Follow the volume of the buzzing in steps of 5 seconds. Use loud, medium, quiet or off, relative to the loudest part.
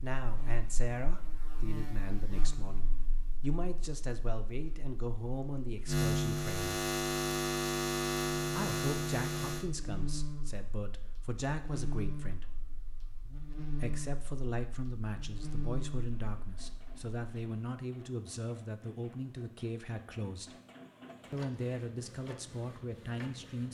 quiet, loud, medium, medium, off.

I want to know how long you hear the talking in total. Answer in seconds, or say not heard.
20 s.